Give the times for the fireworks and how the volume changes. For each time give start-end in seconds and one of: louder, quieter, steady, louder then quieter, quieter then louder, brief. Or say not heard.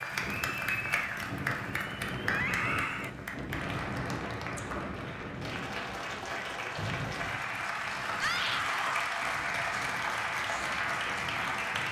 not heard.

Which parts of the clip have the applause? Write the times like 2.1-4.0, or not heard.
0.0-11.8.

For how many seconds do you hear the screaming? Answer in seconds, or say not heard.
2 s.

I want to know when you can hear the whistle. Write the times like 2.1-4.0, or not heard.
6.8-7.5.